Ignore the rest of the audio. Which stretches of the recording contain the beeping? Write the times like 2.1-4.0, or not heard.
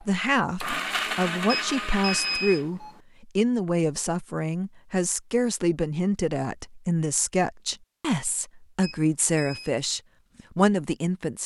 1.4-3.0, 8.8-9.7.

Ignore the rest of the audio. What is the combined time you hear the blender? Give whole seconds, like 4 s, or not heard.
3 s.